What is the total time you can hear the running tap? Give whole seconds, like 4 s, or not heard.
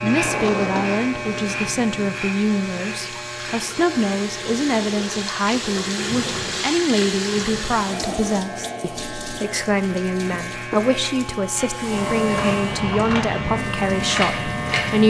15 s.